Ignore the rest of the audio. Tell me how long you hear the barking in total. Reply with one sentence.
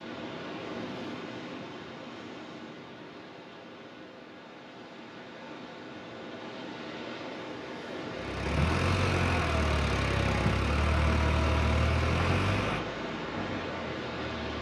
You can't hear the barking here.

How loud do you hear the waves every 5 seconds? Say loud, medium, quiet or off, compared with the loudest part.
medium, loud, loud.